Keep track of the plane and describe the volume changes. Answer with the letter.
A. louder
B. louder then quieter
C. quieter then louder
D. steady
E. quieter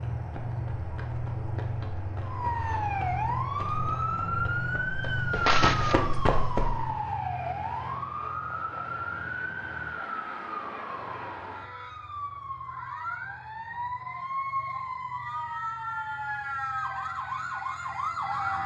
E.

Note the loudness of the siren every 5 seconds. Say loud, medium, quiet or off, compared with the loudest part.
loud, loud, medium, loud.